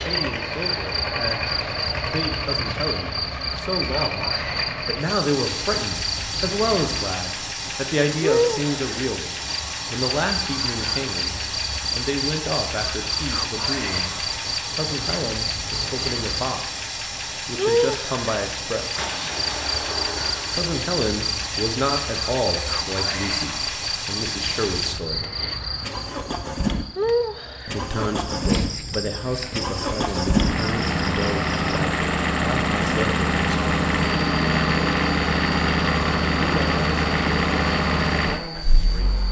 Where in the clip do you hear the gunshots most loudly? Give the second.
19 s.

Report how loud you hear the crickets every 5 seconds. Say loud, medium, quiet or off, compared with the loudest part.
loud, loud, loud, loud, loud, loud, medium, medium.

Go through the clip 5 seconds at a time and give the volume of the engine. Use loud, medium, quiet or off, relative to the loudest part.
medium, medium, medium, medium, medium, medium, loud, loud.